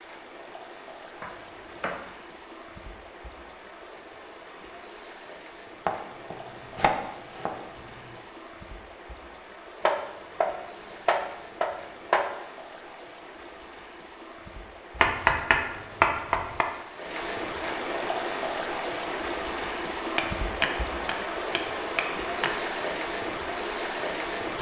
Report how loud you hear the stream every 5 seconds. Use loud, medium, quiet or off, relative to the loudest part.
quiet, quiet, quiet, loud, loud.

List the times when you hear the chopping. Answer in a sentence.
The chopping can be heard from 1.2 to 2.0 s, from 5.8 to 8.2 s, from 9.8 to 12.2 s, from 15.0 to 16.6 s and from 20.1 to 22.5 s.